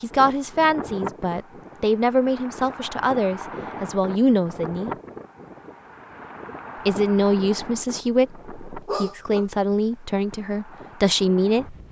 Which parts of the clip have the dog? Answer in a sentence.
You can hear the dog from 8.8 to 10.3 s.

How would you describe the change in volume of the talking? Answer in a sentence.
The volume of the talking stays about the same.